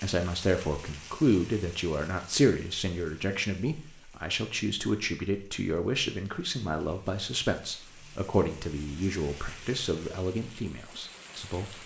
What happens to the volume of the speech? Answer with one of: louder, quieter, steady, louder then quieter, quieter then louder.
quieter.